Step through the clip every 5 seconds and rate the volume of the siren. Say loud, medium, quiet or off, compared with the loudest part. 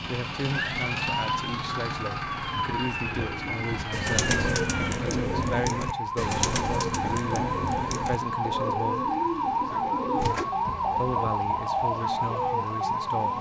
medium, loud, loud.